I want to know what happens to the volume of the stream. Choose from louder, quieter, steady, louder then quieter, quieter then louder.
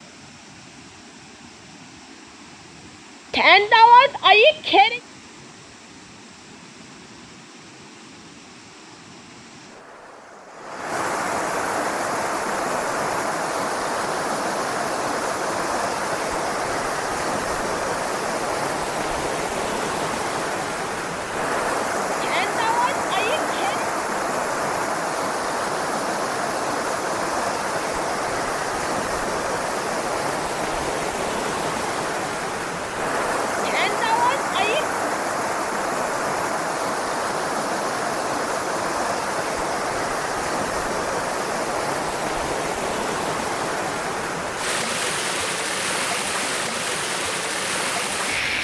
louder.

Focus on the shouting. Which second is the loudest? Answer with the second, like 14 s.
4 s.